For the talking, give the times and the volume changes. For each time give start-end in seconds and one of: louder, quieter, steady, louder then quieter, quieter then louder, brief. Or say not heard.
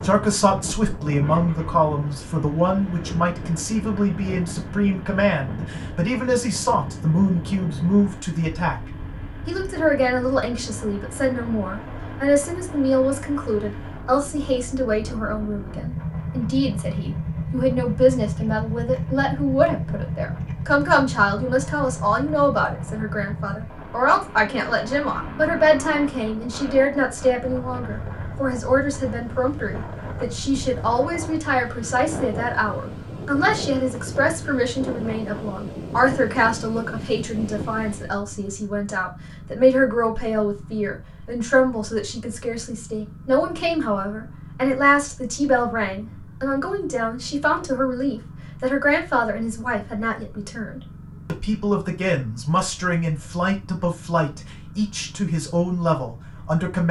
0.0-56.8 steady.